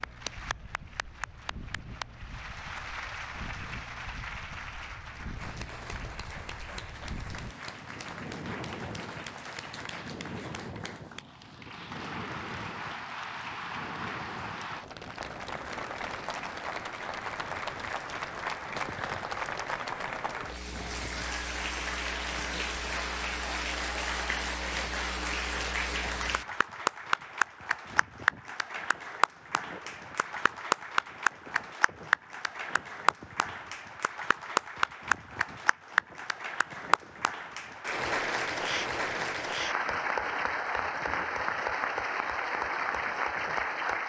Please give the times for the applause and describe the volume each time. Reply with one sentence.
The applause can be heard from 0.0 to 44.0 s, getting louder.